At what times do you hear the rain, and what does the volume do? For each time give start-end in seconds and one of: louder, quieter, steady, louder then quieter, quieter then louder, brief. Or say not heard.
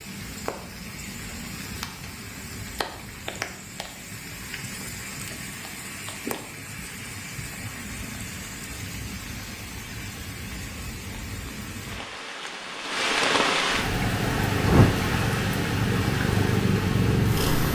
0.0-17.7 louder.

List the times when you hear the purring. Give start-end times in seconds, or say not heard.
13.8-17.7.